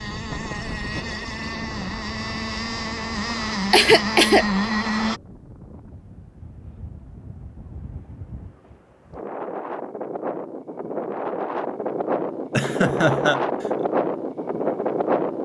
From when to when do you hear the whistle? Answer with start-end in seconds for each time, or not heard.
not heard.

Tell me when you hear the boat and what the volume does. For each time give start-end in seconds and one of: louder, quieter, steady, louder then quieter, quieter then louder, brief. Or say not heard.
0.0-5.2 louder.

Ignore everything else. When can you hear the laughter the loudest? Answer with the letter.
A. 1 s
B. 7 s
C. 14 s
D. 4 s
D.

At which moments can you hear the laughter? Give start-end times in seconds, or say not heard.
3.7-4.5, 12.6-13.4.